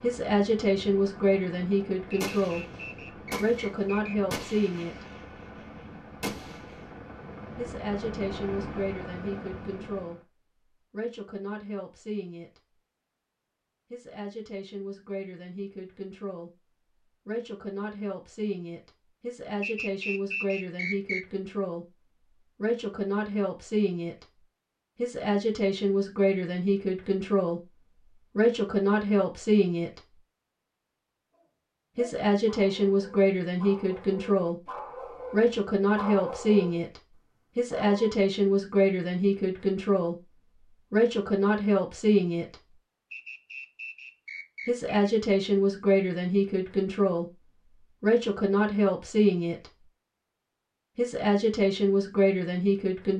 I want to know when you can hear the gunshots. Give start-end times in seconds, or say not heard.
2.2-6.9.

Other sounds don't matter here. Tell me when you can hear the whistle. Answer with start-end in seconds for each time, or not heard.
2.1-4.2, 19.6-21.2, 43.1-44.9.